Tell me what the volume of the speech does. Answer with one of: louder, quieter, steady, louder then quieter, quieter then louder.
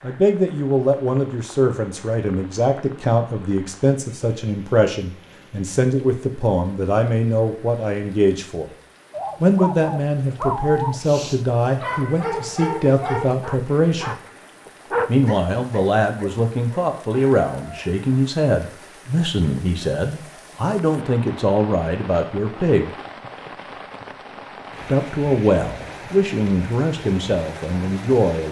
steady.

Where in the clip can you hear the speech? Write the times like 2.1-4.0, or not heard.
0.0-8.7, 9.4-14.2, 15.1-22.9, 24.9-28.4.